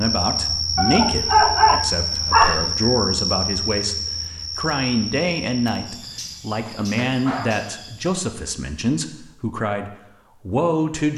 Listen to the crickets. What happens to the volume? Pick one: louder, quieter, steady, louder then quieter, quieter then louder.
quieter.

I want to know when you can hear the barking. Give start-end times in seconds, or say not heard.
0.8-2.6, 6.0-7.7.